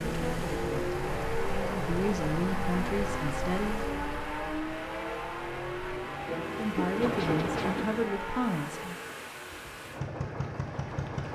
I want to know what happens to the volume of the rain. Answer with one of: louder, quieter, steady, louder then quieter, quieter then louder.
quieter then louder.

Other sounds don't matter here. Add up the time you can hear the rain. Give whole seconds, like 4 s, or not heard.
8 s.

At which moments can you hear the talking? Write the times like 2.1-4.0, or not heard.
0.0-3.9, 6.5-8.9.